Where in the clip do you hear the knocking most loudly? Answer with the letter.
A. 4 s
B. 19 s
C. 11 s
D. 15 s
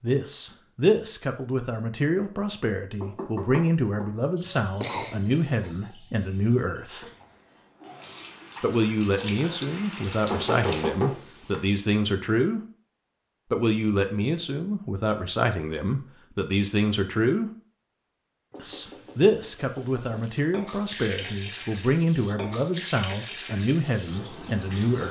C.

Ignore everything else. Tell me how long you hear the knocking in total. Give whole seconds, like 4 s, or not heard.
4 s.